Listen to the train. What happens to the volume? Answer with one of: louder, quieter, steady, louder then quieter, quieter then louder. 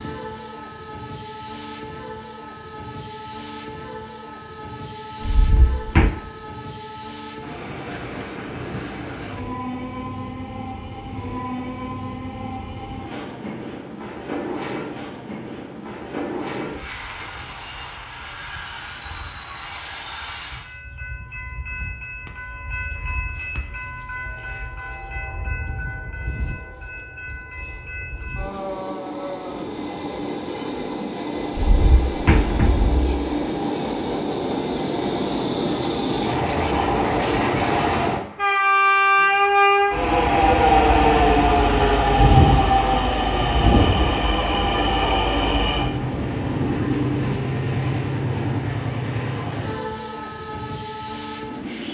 louder.